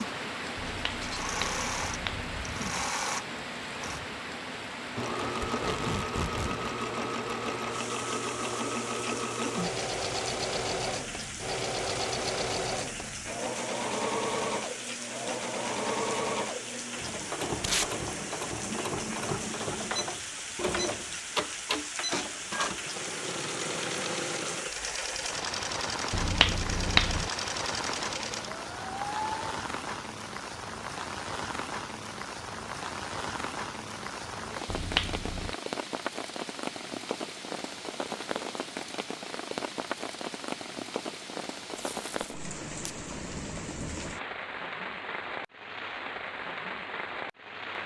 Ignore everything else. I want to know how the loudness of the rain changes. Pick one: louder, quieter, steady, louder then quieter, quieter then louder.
steady.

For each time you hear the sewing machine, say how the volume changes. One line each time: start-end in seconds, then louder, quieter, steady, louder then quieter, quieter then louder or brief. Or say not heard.
0.0-29.4 steady.